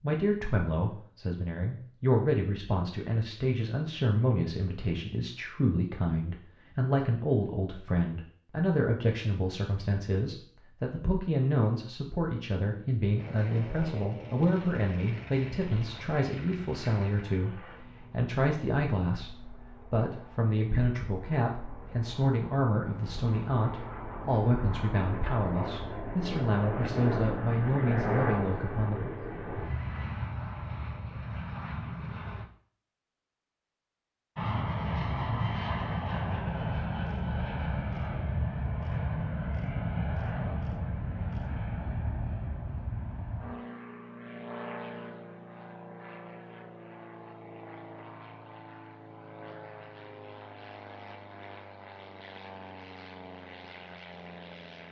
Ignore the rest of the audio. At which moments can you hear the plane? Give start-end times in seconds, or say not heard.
13.2-32.5, 34.4-54.8.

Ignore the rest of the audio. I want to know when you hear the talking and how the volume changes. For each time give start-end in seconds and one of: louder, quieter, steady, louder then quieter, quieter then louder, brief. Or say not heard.
0.0-29.1 steady.